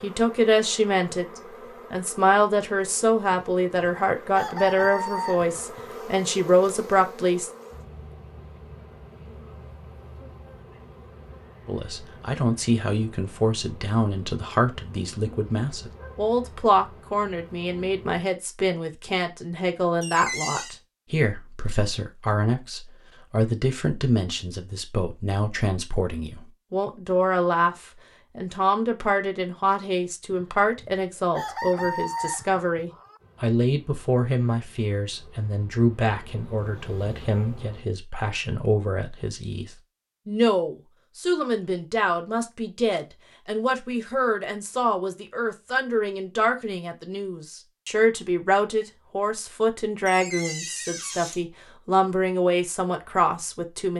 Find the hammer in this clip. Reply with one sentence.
You can't hear the hammer here.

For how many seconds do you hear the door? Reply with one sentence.
The door can be heard for 2 seconds in total.